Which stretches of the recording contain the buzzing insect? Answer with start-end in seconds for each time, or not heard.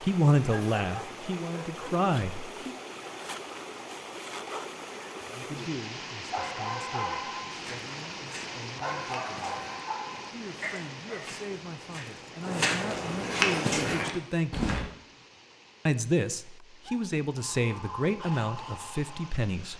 not heard.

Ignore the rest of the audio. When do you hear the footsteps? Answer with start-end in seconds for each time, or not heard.
7.5-14.8.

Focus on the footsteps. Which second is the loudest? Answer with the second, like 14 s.
14 s.